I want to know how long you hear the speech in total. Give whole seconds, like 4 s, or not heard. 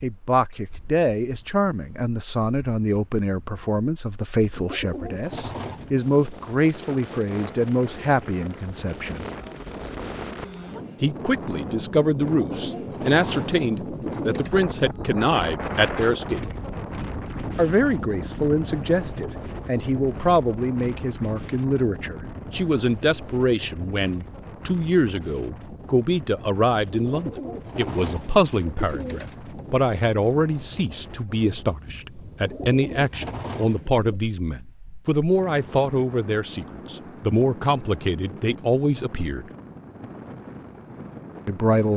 37 s.